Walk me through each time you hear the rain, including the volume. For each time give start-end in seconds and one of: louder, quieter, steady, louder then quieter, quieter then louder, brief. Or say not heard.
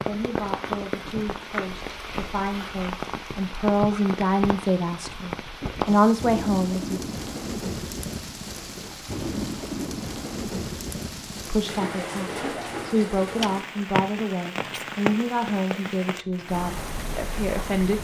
0.0-18.0 steady.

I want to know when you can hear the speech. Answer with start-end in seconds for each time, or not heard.
0.1-7.0, 11.3-18.0.